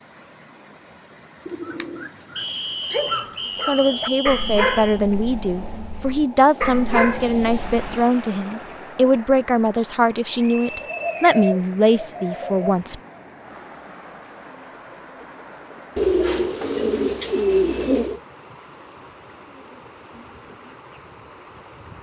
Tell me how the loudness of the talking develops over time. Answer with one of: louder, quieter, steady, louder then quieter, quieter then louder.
steady.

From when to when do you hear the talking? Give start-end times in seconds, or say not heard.
3.6-12.9.